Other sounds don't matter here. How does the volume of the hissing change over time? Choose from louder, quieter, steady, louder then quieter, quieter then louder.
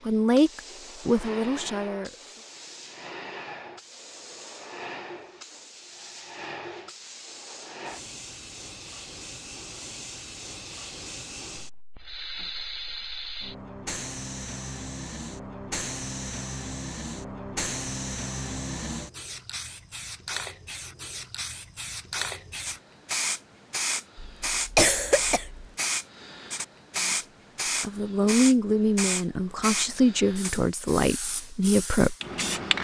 louder.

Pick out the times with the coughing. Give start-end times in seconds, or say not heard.
24.1-25.6.